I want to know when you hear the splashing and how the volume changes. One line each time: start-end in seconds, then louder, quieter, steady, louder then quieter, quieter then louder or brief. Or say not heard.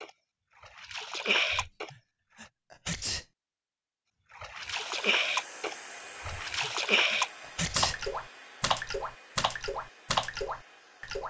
0.0-2.5 brief
4.3-11.2 steady.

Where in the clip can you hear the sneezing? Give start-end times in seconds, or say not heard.
1.5-3.2, 6.2-8.0.